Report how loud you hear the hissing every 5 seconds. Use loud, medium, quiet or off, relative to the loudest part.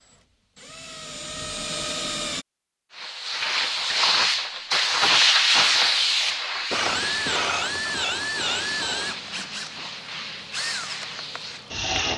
loud, loud, quiet.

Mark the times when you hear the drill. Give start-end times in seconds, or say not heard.
0.0-2.5, 6.7-12.1.